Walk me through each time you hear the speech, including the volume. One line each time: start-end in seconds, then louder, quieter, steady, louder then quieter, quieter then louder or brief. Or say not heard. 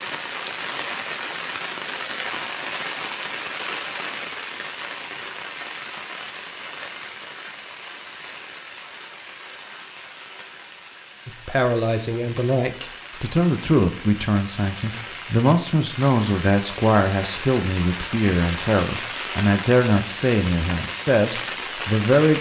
11.2-22.3 steady.